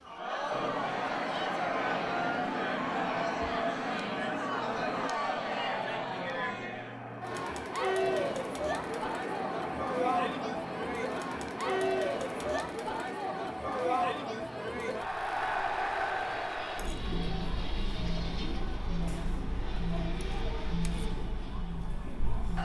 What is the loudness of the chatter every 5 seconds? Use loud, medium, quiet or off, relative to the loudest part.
loud, loud, loud, loud, medium.